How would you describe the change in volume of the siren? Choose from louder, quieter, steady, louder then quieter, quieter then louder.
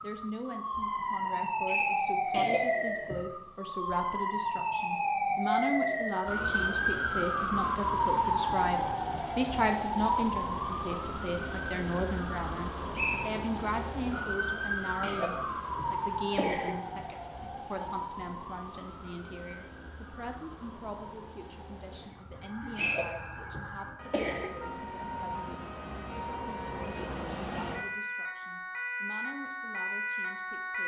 quieter then louder.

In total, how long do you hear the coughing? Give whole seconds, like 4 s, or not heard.
5 s.